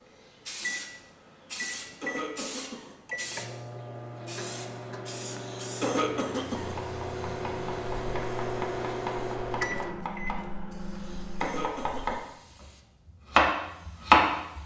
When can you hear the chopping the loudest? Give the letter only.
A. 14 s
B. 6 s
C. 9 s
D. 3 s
A.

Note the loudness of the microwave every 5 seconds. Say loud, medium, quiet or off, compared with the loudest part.
medium, loud, medium.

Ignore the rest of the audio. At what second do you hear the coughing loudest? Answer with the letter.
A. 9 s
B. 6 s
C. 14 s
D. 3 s
B.